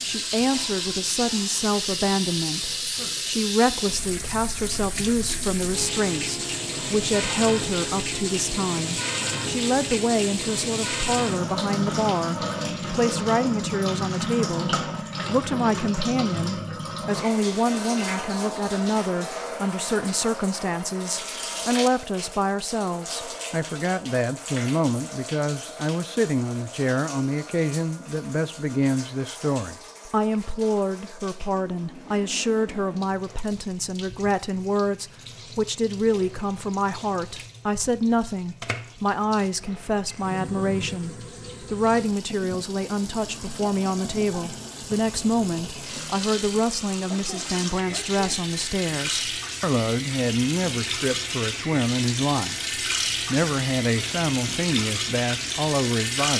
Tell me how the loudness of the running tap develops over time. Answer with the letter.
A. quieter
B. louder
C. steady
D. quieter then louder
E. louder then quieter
D.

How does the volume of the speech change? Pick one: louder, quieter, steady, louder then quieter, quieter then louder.
steady.